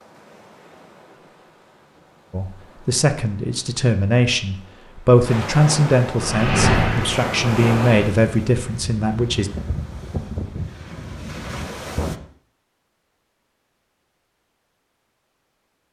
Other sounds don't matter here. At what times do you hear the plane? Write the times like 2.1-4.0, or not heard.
6.2-8.1.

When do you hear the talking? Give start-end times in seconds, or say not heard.
2.3-9.5.